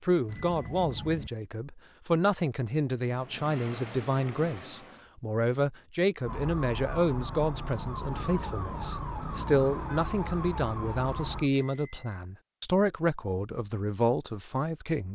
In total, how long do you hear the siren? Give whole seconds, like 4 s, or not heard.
5 s.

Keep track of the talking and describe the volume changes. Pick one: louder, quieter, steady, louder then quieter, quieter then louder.
steady.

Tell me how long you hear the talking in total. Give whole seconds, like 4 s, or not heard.
15 s.